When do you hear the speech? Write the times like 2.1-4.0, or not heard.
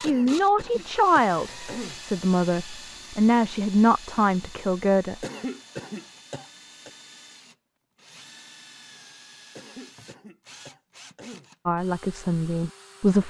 0.0-5.2, 11.7-13.2.